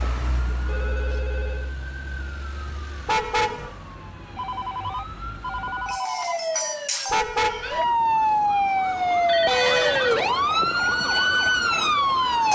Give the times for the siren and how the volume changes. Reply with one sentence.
The siren can be heard from 0.0 to 12.5 s, getting louder.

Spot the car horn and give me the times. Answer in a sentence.
You can hear the car horn from 3.0 to 3.7 s and from 7.1 to 7.8 s.